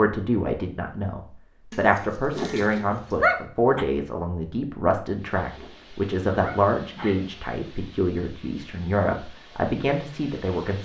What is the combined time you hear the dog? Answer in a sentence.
You can hear the dog for 3 seconds altogether.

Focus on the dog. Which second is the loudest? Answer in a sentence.
The volume of the dog peaks at 3 seconds.